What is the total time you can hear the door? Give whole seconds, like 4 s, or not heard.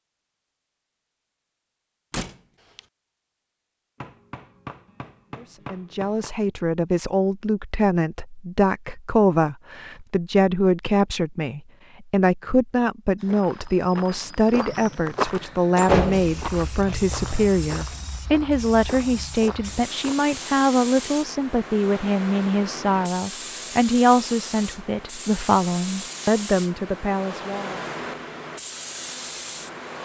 2 s.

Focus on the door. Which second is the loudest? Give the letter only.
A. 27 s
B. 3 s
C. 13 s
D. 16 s
D.